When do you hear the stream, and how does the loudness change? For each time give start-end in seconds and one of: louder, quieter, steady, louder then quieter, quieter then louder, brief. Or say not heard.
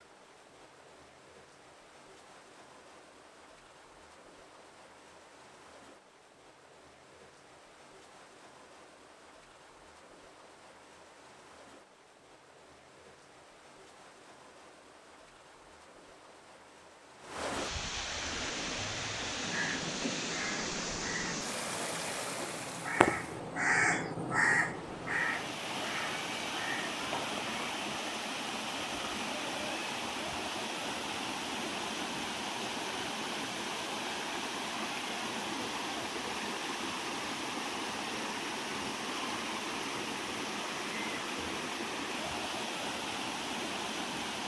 0.0-44.4 louder.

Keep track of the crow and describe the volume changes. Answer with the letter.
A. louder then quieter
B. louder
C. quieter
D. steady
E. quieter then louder
A.